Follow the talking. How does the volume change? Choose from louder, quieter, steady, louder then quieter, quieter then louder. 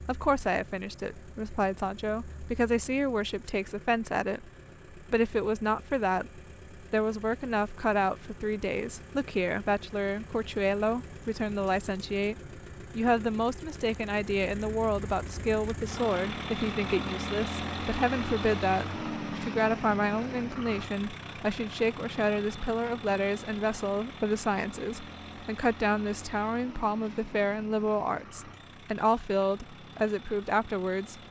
steady.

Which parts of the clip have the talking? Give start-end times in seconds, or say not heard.
0.1-12.3, 12.9-31.2.